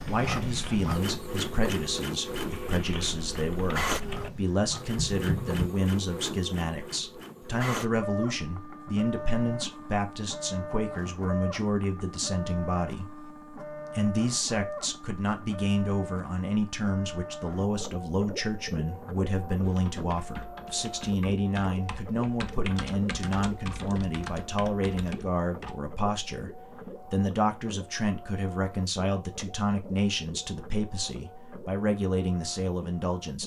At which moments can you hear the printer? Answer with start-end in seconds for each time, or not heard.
0.0-33.4.